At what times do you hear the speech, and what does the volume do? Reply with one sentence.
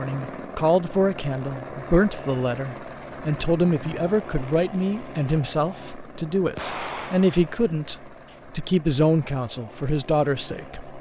The speech can be heard from 0.0 to 10.9 s, at a steady volume.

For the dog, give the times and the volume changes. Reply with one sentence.
The dog can't be heard in this clip.